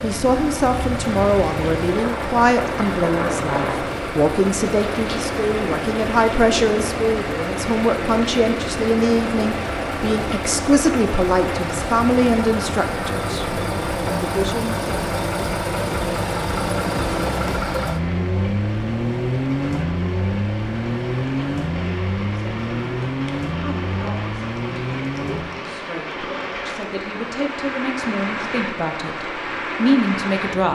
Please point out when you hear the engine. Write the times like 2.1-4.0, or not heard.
0.0-25.6.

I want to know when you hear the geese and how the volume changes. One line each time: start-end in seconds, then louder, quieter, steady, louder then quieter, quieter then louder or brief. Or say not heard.
not heard.